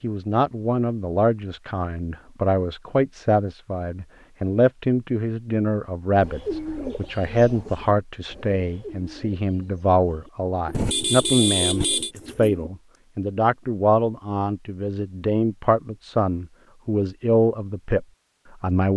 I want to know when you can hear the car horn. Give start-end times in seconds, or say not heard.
10.7-12.1.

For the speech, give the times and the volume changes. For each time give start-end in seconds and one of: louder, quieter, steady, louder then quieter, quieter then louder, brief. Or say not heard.
0.0-18.9 steady.